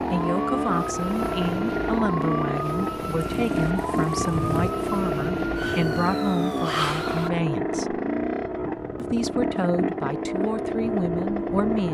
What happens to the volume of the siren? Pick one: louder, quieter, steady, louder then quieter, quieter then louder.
steady.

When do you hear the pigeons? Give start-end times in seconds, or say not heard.
not heard.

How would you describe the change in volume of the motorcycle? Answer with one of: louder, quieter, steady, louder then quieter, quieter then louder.
steady.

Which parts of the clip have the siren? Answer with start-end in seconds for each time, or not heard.
0.0-7.3.